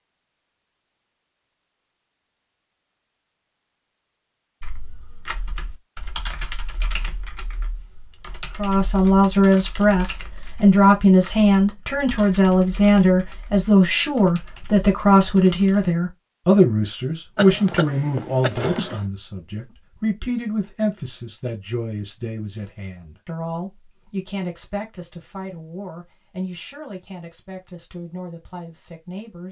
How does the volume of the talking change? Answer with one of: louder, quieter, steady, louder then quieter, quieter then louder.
quieter.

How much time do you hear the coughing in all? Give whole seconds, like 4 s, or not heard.
2 s.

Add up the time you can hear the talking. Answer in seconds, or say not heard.
21 s.